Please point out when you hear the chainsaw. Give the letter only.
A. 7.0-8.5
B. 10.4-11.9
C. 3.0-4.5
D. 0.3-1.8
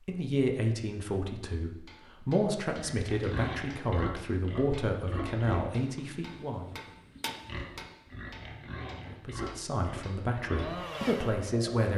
B.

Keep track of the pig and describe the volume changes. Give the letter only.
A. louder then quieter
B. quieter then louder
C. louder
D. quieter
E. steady
B.